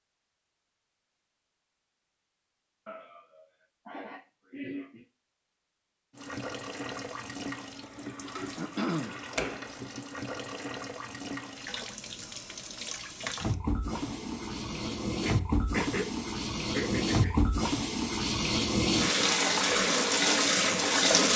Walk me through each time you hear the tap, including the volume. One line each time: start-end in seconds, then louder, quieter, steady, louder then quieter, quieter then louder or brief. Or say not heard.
6.2-21.3 louder.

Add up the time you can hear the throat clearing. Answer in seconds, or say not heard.
4 s.